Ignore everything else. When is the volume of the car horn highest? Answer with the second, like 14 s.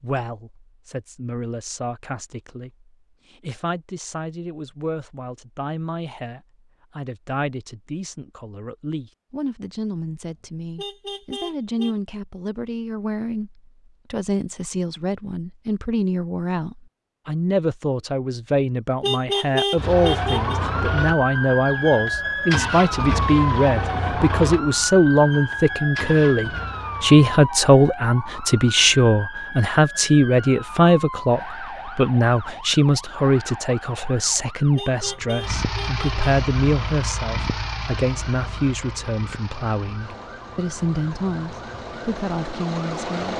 19 s.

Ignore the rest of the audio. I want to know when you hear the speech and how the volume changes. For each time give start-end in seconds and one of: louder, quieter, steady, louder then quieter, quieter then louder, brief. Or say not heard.
0.0-43.3 louder then quieter.